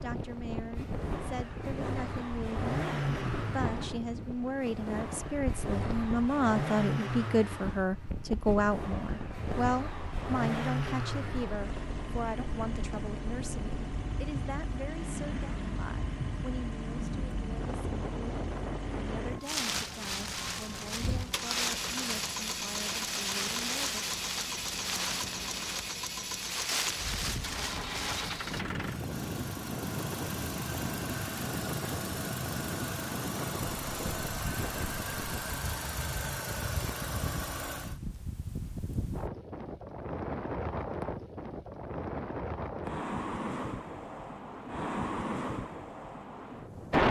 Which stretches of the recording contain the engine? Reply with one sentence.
You can hear the engine from 0.0 to 38.0 s.